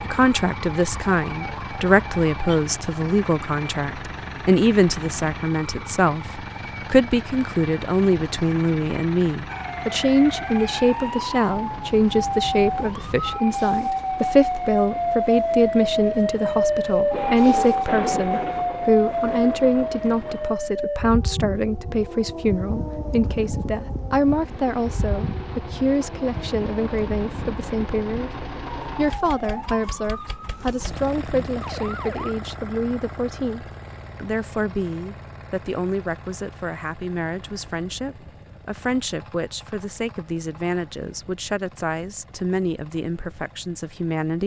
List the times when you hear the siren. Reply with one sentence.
You can hear the siren from 0.0 to 2.6 s and from 9.4 to 32.4 s.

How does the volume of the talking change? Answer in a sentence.
The loudness of the talking goes down.